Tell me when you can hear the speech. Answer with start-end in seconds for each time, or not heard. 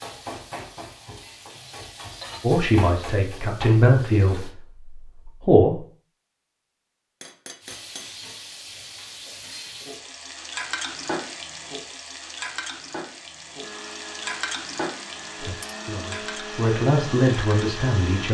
2.4-5.8, 15.4-18.2.